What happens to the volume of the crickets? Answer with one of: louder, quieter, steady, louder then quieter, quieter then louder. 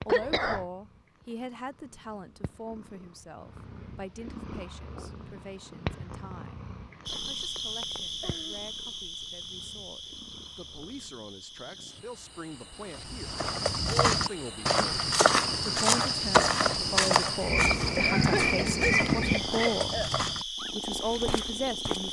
quieter then louder.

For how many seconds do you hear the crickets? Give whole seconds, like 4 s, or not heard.
15 s.